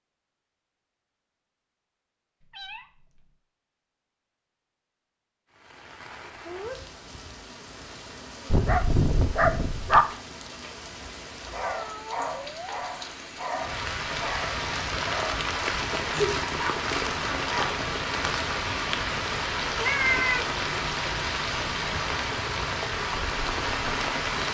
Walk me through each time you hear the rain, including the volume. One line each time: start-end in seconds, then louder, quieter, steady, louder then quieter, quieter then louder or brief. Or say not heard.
5.5-24.4 louder.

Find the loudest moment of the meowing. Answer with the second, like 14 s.
20 s.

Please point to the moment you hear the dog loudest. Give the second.
10 s.